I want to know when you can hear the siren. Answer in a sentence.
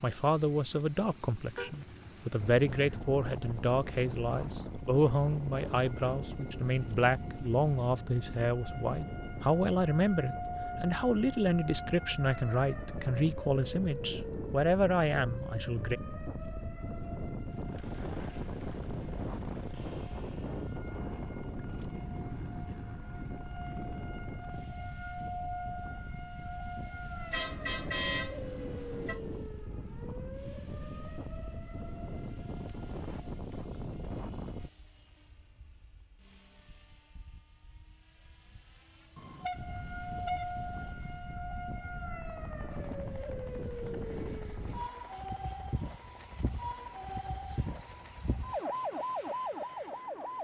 You can hear the siren from 2.4 to 34.7 s and from 39.5 to 50.3 s.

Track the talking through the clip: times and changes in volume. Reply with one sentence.
You can hear the talking from 0.0 to 16.0 s, at a steady volume.